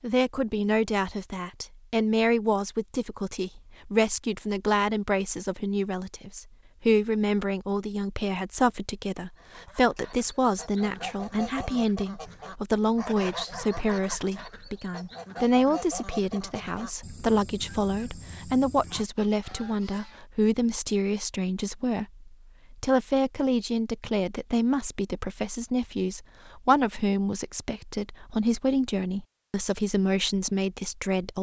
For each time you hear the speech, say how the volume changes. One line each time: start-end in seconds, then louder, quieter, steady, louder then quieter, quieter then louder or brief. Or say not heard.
0.0-31.3 steady.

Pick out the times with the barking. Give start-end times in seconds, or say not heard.
not heard.